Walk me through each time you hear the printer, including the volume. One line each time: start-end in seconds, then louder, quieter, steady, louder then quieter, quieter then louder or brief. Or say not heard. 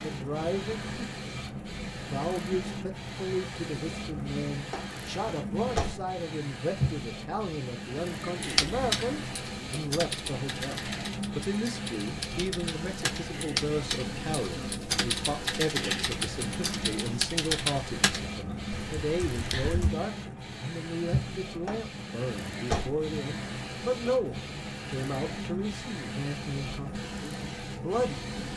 0.0-28.5 steady.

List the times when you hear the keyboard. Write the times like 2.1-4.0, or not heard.
8.4-19.9.